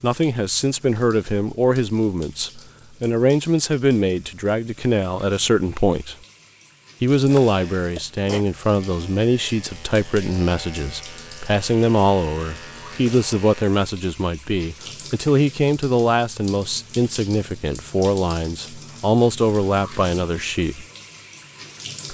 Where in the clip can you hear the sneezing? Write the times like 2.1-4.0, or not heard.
8.0-8.4.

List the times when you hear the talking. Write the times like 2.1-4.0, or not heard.
0.0-6.2, 7.0-20.9.